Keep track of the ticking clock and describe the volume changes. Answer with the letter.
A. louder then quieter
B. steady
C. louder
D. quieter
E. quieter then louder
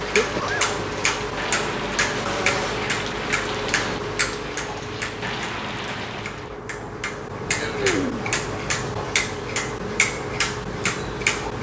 E.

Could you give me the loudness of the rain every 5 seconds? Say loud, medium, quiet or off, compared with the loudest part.
loud, loud, off.